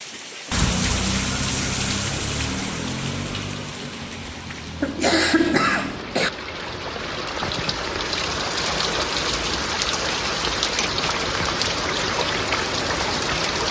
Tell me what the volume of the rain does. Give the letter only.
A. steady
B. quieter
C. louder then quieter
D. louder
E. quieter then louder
E.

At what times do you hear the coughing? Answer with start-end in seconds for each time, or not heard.
4.8-6.3.